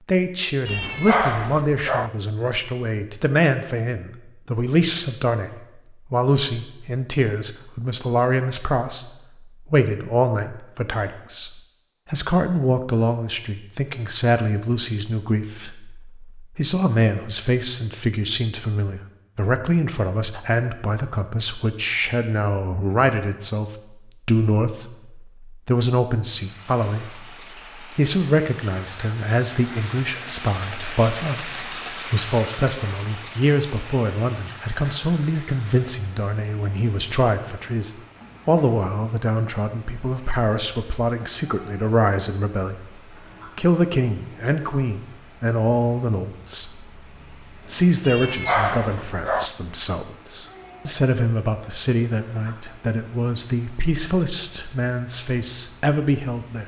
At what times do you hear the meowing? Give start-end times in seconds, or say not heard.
0.7-2.1, 48.0-49.5.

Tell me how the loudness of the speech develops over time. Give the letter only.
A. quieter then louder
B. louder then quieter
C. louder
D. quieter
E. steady
E.